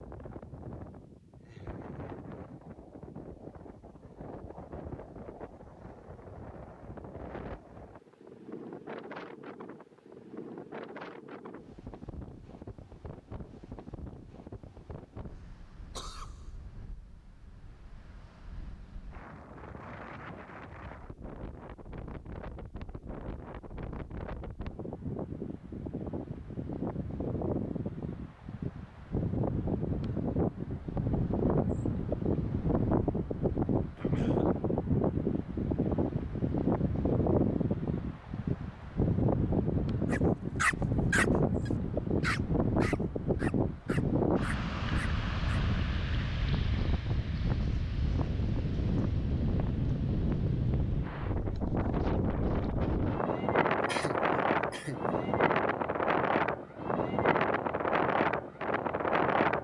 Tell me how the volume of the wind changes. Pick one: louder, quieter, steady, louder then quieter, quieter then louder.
louder.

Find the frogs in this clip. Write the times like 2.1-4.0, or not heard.
not heard.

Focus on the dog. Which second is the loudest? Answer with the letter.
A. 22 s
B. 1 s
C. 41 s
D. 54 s
C.